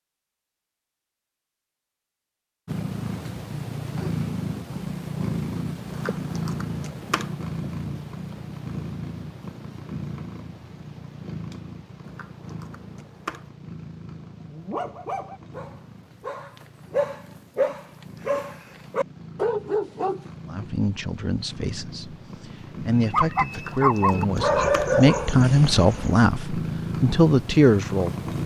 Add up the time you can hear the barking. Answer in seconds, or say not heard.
9 s.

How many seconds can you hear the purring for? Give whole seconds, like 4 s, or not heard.
26 s.